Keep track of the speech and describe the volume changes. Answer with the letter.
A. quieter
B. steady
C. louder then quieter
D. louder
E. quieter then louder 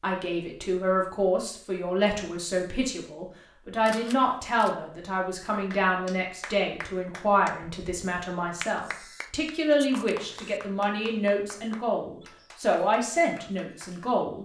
B.